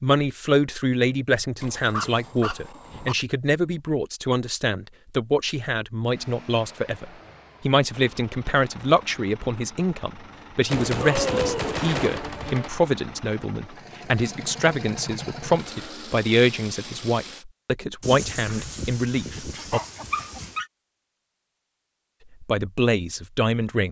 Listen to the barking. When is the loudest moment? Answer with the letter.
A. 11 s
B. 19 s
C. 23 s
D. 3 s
A.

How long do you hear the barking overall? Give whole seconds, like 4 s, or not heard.
6 s.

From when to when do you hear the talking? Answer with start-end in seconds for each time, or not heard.
0.0-19.8, 22.4-23.8.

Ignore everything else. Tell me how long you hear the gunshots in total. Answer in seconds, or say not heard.
2 s.